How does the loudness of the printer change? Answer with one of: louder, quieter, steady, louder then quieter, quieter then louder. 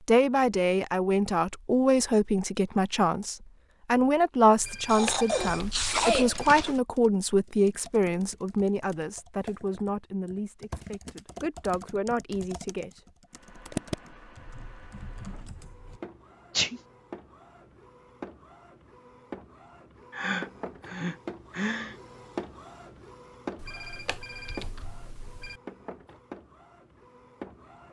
louder then quieter.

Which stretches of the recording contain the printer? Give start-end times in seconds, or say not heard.
13.3-27.8.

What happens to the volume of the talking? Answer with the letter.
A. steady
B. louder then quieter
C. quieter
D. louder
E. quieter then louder
C.